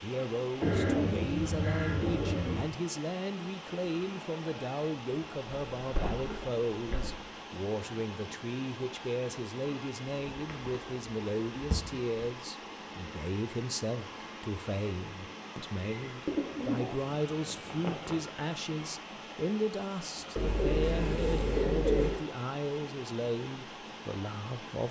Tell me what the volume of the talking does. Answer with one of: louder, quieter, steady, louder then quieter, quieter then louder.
steady.